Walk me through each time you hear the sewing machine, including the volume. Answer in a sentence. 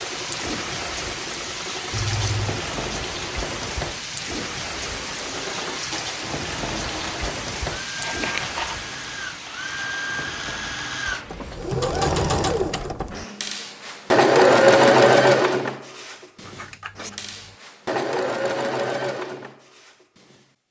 You can hear the sewing machine from 0.0 to 20.6 s, getting louder then quieter.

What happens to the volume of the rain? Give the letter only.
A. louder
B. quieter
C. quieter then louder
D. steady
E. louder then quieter
B.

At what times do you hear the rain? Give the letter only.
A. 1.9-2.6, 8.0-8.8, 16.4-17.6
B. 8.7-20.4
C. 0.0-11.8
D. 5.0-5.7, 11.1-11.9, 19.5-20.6
C.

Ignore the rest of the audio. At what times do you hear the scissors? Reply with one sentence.
You can hear the scissors from 1.9 to 2.6 s, from 8.0 to 8.8 s and from 16.4 to 17.6 s.